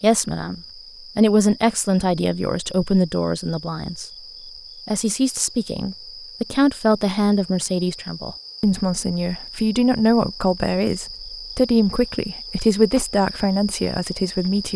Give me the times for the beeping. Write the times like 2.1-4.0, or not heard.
not heard.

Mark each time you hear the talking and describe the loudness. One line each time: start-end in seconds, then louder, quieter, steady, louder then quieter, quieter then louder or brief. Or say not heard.
0.0-4.0 louder then quieter
4.8-14.7 steady.